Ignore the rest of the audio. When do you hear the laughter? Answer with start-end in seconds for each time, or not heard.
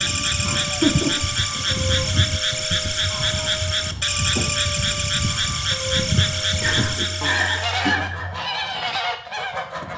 0.4-1.6, 6.2-8.3.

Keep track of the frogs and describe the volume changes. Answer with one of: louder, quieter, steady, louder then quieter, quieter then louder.
steady.